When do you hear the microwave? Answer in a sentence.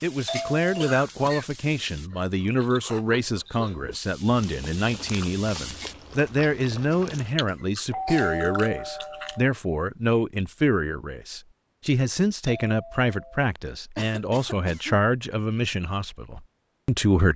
The microwave can't be heard in this clip.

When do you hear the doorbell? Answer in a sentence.
The doorbell can be heard from 0.2 to 1.0 s, from 7.9 to 9.5 s and from 12.4 to 13.3 s.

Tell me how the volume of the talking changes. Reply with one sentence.
The loudness of the talking stays about the same.